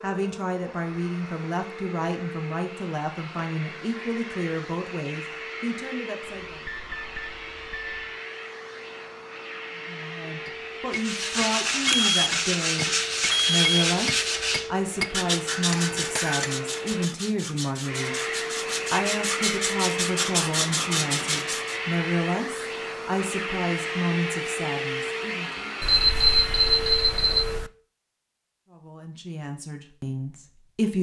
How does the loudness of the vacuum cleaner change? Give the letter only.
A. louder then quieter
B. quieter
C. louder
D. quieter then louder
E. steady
C.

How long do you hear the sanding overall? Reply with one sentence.
You can hear the sanding for 11 seconds altogether.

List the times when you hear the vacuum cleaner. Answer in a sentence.
You can hear the vacuum cleaner from 0.0 to 27.6 s.